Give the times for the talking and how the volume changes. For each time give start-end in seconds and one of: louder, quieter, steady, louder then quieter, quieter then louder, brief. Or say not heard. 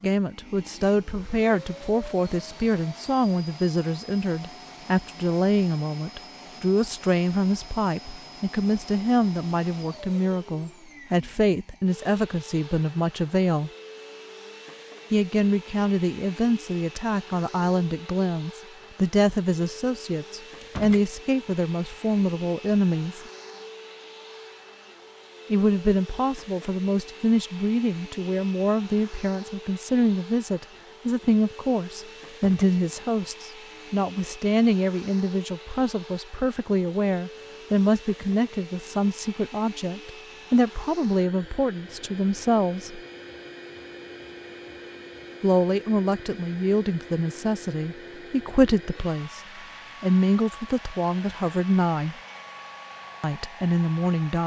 0.0-13.7 steady
15.1-23.2 steady
25.5-43.0 steady
45.4-49.4 quieter then louder
50.0-52.1 brief
53.2-54.4 brief.